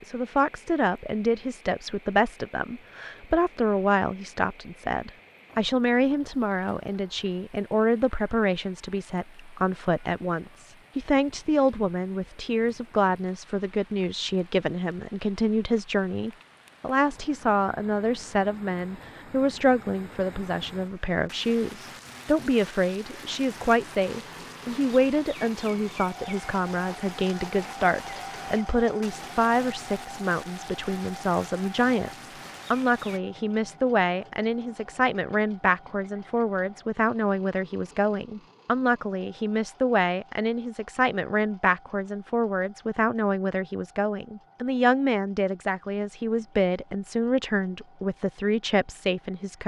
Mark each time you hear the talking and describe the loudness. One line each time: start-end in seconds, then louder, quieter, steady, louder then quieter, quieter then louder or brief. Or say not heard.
0.0-49.6 steady.